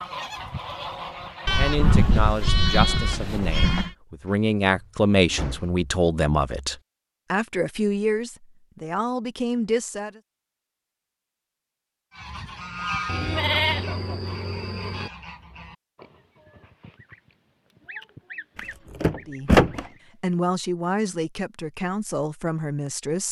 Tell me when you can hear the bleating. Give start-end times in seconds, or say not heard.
1.4-3.9, 13.1-15.1.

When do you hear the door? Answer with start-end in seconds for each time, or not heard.
4.7-5.8, 18.6-19.9.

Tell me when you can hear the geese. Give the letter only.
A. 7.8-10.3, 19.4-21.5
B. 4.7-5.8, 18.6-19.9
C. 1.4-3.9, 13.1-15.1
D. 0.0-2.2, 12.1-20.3
D.